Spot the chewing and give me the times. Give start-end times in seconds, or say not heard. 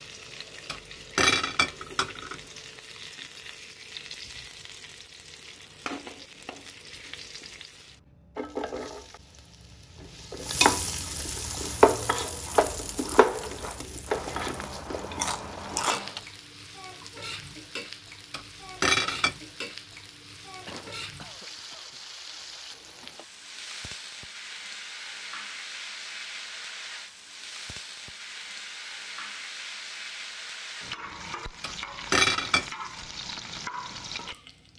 11.3-16.2.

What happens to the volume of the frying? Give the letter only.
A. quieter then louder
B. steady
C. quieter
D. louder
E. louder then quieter
E.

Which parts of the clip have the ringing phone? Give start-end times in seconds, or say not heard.
not heard.